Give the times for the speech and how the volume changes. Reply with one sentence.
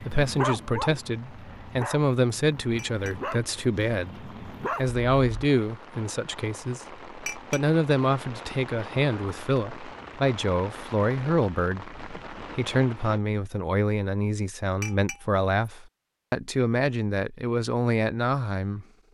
The speech can be heard from 0.0 to 18.9 s, at a steady volume.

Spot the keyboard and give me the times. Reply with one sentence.
The keyboard can't be heard in this clip.